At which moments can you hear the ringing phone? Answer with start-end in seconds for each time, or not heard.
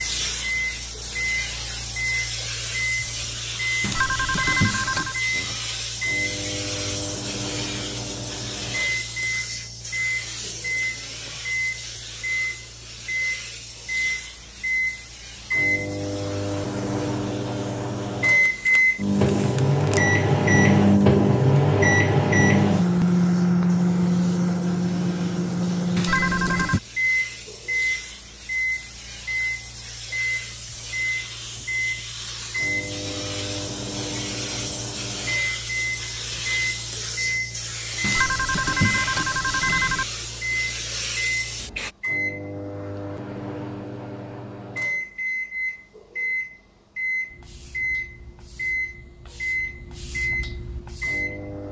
3.8-5.2, 25.9-26.8, 38.0-40.0.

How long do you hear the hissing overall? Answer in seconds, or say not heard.
46 s.